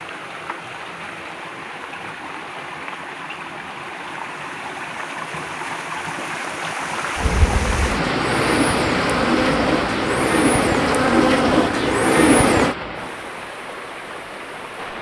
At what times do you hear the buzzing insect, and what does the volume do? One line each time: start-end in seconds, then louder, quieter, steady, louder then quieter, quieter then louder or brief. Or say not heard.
7.2-12.8 louder.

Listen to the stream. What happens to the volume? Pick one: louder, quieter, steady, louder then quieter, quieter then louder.
louder then quieter.